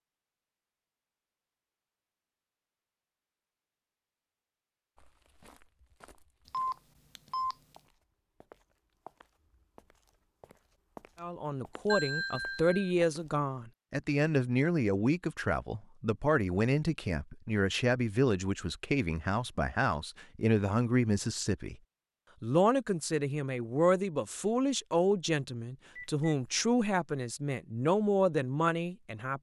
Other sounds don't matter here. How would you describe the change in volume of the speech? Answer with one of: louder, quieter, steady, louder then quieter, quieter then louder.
steady.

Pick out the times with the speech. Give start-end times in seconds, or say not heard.
11.2-21.8, 22.4-29.3.